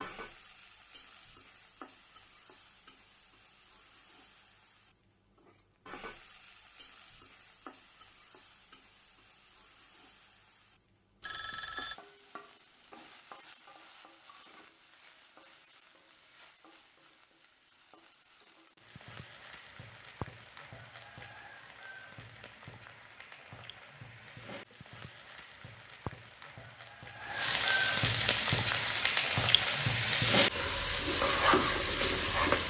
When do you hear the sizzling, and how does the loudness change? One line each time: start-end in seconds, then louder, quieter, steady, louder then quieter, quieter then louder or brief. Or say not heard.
0.0-32.6 louder.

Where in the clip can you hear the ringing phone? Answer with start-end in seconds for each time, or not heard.
11.2-12.0.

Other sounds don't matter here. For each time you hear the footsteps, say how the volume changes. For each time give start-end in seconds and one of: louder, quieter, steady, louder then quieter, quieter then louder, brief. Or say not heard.
not heard.